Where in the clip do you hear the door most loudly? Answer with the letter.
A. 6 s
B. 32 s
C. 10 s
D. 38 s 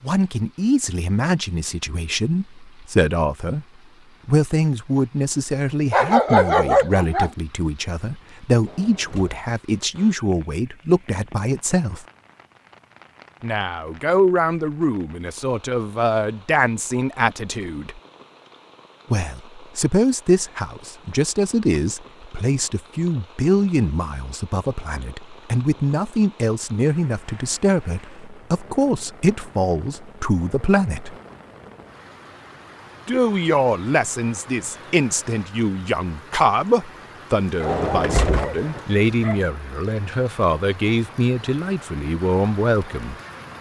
D.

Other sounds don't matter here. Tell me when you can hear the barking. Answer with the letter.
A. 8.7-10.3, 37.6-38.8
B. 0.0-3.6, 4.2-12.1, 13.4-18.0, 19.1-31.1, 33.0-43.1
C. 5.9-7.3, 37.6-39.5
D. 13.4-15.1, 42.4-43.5
C.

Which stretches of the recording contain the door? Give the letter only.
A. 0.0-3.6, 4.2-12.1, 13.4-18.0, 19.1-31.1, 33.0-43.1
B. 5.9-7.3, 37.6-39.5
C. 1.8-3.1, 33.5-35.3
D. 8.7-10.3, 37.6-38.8
D.